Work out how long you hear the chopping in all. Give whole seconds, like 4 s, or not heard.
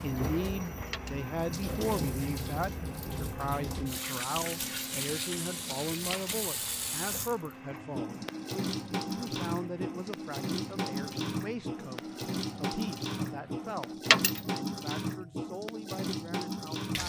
not heard.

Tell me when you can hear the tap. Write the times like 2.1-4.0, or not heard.
0.0-17.0.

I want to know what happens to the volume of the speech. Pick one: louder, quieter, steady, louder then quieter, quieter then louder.
quieter.